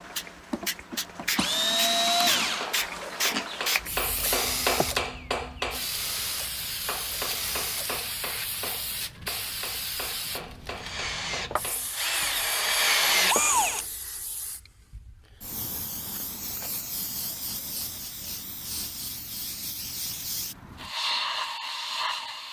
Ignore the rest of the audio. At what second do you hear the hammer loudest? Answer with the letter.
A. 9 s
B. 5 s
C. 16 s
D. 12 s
B.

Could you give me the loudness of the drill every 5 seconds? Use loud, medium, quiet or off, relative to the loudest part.
loud, quiet, loud, off, off.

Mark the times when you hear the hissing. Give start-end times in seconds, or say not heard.
0.0-22.4.